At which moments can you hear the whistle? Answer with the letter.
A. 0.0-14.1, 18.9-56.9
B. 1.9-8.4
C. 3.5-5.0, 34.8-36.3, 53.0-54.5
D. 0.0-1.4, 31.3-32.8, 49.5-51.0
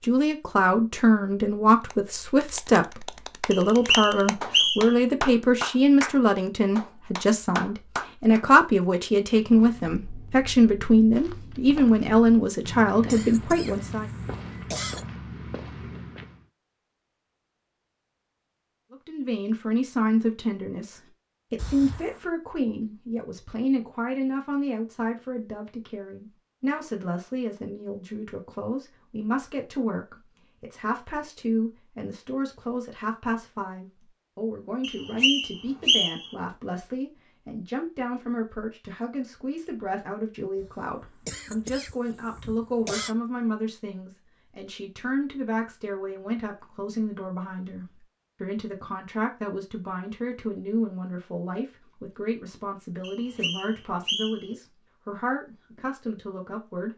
C.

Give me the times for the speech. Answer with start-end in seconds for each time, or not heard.
0.0-14.1, 18.9-56.9.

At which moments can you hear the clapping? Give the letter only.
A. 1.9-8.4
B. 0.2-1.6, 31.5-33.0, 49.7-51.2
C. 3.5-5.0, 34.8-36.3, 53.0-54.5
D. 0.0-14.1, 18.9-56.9
A.